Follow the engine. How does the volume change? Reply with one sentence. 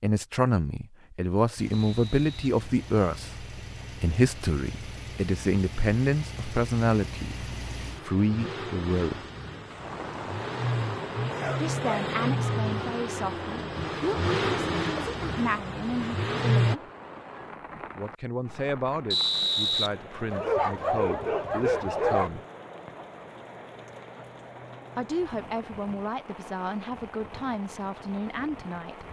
The loudness of the engine goes up.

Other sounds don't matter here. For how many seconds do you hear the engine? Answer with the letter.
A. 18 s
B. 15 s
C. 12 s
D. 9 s
B.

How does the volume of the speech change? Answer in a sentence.
The volume of the speech goes down.